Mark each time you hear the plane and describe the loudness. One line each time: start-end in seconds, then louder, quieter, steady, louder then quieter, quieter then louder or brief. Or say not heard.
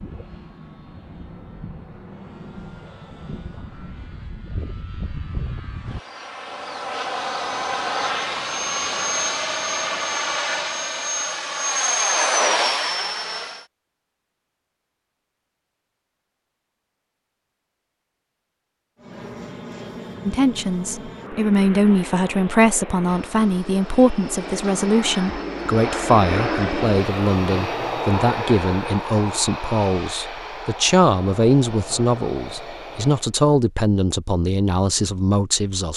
0.0-13.7 louder
18.9-33.4 louder then quieter.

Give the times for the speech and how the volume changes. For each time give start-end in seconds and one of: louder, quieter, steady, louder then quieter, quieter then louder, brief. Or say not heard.
20.2-35.9 steady.